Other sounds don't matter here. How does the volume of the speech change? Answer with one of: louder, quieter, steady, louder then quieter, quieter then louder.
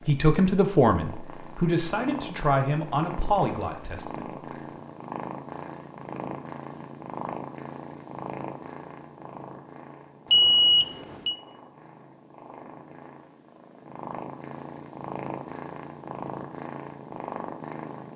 quieter.